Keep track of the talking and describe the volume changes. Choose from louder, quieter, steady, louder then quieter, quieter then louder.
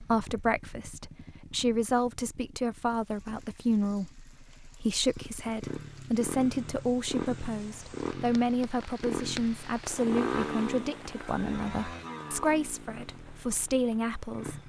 steady.